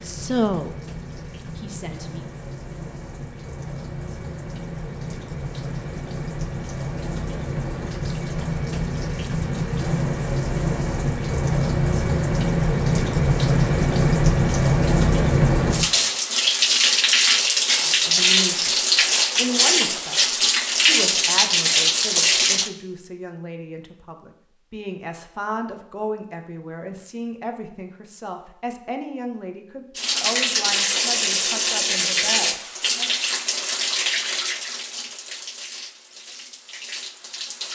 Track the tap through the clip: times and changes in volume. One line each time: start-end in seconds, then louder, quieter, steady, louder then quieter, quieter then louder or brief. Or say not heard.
0.0-22.7 louder
29.9-37.7 quieter.